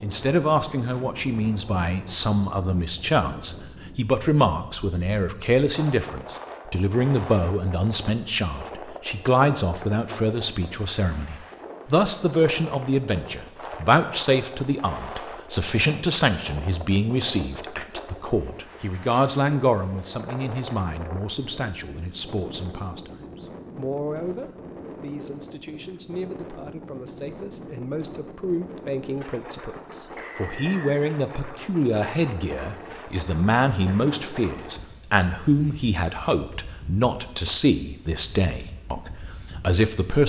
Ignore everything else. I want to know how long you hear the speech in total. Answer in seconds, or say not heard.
40 s.